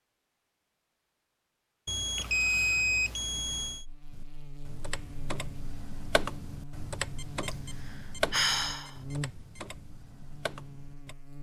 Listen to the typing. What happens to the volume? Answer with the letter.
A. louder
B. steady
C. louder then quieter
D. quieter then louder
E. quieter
C.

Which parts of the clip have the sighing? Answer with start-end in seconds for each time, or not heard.
2.1-2.9, 7.5-8.9.